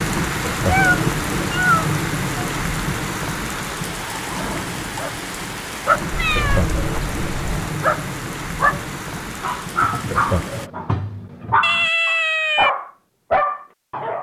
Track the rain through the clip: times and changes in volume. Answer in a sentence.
The rain can be heard from 0.0 to 10.7 s, getting quieter.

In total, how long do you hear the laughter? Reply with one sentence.
You can hear the laughter for 2 seconds altogether.